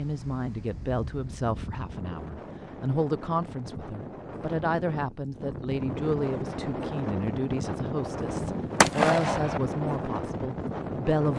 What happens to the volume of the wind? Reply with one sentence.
The loudness of the wind goes up.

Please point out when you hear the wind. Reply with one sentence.
The wind can be heard from 0.0 to 11.3 s.